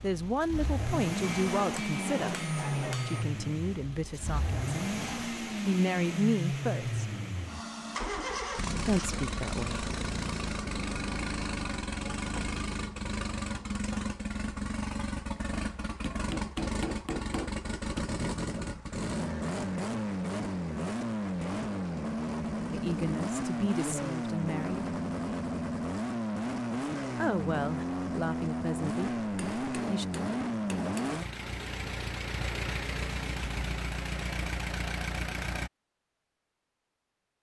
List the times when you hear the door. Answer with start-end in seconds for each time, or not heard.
not heard.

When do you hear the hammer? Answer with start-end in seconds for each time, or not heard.
1.2-3.2, 16.1-18.1, 29.2-31.2.